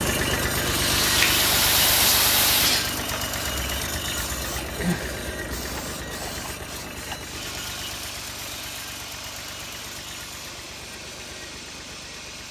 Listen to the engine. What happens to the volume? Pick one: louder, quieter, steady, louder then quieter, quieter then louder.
quieter.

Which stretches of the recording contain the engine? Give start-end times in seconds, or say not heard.
0.0-12.4.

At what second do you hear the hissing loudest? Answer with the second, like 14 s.
2 s.